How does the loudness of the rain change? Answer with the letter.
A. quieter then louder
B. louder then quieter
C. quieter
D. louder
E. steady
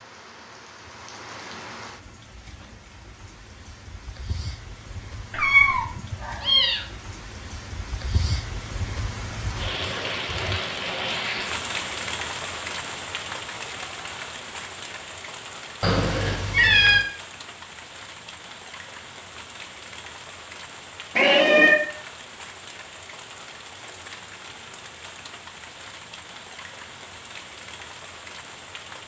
B.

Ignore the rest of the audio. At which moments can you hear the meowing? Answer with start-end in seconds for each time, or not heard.
5.3-6.8, 15.8-17.1, 21.1-21.8.